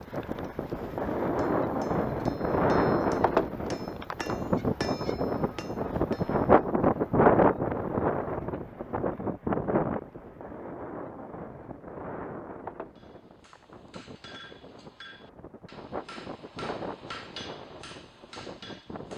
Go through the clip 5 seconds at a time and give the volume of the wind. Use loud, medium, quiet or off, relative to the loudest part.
loud, loud, quiet, quiet.